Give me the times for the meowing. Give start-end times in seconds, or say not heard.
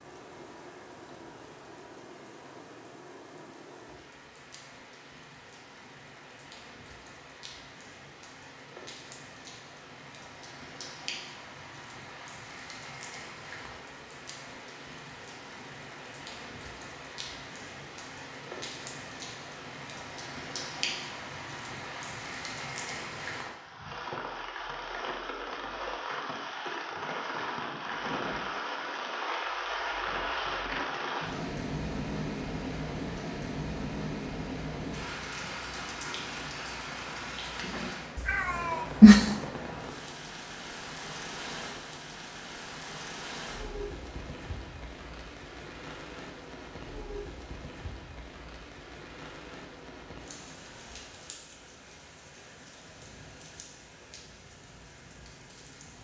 38.2-39.2.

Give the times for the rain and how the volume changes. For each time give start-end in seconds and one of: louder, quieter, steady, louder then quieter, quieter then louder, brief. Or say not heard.
0.0-55.9 louder then quieter.